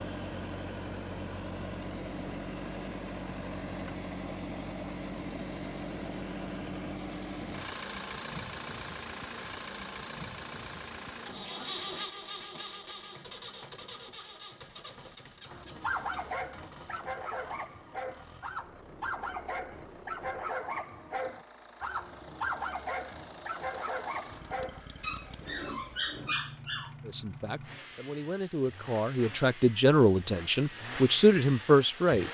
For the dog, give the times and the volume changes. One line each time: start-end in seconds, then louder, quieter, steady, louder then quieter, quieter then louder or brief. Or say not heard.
15.4-26.9 steady.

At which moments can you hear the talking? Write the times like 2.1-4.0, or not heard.
27.1-32.2.